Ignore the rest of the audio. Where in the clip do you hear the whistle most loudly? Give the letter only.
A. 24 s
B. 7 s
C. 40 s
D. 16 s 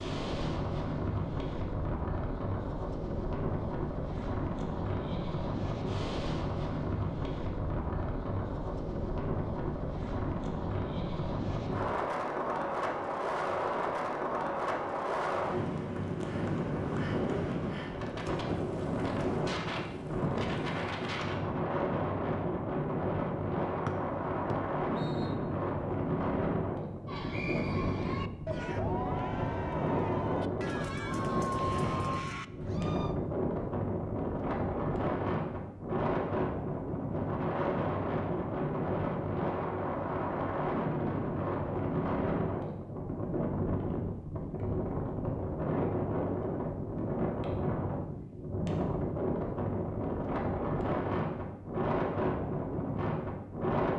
A.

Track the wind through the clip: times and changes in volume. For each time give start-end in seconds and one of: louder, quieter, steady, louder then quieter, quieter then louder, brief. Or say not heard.
0.0-53.9 steady.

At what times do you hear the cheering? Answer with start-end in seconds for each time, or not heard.
27.1-33.1.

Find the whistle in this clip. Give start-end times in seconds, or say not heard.
23.9-25.4.